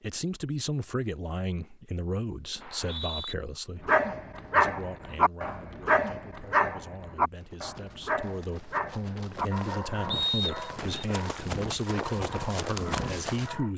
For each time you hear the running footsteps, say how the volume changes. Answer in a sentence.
You can hear the running footsteps from 7.3 to 13.6 s, getting louder.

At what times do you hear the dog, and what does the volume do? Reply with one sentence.
You can hear the dog from 3.9 to 13.7 s, getting quieter.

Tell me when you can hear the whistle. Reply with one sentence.
The whistle can be heard from 2.6 to 3.4 s and from 10.1 to 10.9 s.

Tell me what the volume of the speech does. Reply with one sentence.
The volume of the speech goes down, then up.